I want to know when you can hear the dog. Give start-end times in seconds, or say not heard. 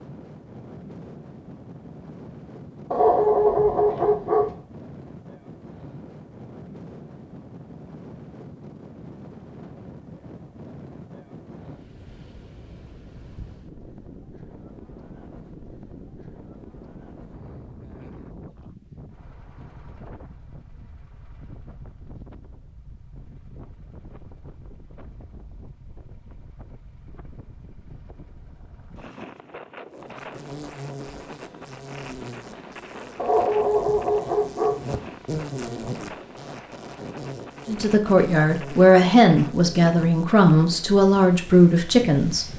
2.9-4.5, 33.1-34.8.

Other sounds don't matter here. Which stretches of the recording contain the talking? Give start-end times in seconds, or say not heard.
37.6-42.5.